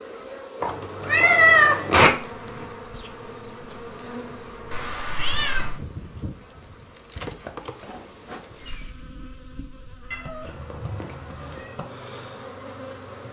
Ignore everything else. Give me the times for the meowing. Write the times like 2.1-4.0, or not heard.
0.6-2.1, 4.7-5.8, 10.1-11.8.